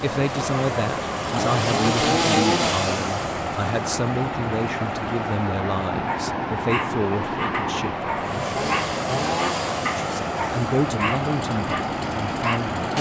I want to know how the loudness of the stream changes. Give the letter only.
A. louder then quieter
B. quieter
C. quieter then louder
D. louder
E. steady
E.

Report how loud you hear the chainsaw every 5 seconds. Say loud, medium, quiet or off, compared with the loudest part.
loud, loud, medium.